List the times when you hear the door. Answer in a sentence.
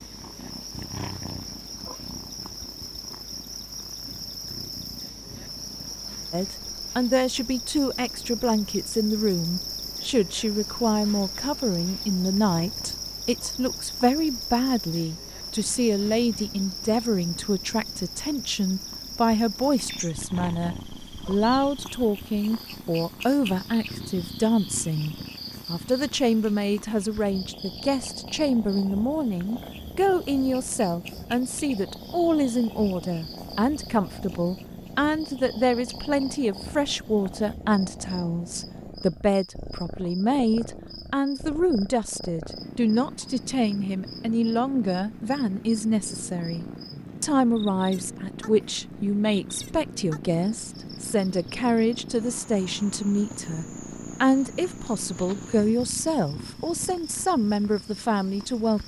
You can't hear the door here.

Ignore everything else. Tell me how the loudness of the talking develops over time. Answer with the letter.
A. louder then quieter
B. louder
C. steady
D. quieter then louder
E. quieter
C.